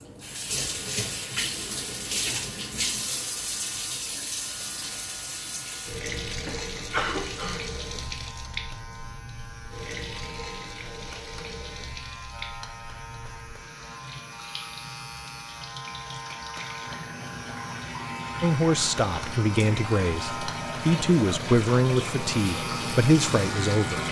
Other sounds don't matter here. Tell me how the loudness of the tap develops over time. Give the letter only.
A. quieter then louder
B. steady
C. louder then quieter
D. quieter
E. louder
A.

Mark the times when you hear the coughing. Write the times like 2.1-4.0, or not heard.
6.5-7.7.